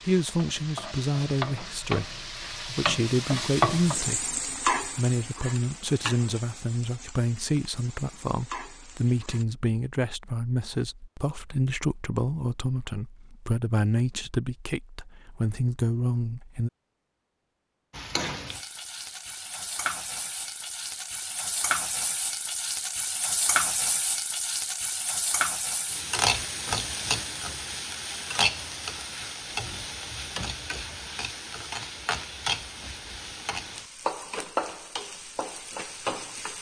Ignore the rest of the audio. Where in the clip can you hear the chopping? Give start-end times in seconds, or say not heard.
not heard.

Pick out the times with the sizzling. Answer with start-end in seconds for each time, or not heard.
0.0-9.4, 17.9-36.5.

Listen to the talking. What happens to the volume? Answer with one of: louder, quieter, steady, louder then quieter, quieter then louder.
steady.